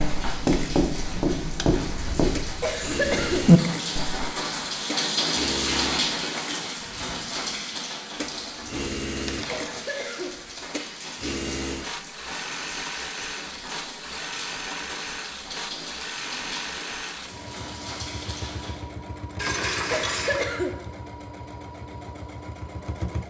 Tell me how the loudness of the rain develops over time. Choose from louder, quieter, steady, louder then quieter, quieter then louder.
louder then quieter.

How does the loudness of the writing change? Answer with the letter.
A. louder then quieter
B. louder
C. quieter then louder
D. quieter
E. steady
C.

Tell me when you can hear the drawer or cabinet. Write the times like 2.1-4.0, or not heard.
not heard.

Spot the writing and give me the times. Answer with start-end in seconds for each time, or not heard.
0.0-4.3.